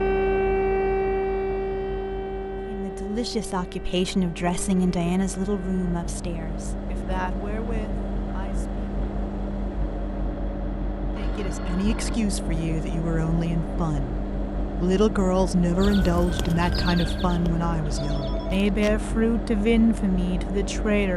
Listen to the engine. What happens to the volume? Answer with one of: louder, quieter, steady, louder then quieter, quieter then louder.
louder.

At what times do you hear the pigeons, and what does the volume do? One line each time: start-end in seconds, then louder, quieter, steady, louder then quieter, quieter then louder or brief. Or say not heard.
not heard.